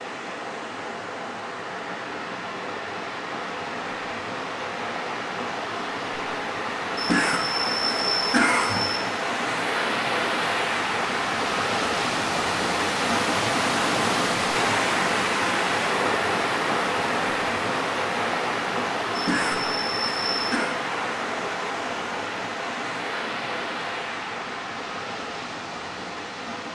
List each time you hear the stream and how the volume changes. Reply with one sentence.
You can hear the stream from 0.0 to 26.7 s, getting louder then quieter.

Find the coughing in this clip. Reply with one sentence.
You can hear the coughing from 7.0 to 9.0 s and from 19.1 to 20.8 s.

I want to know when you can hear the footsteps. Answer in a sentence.
The footsteps can't be heard in this clip.